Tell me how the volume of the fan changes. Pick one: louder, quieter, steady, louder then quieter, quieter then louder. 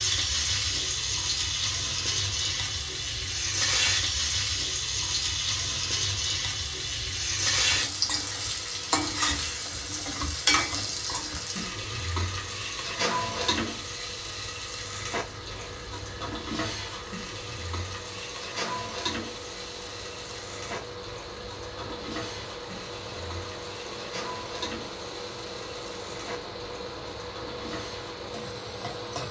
louder.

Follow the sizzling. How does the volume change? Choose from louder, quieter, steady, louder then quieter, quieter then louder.
quieter.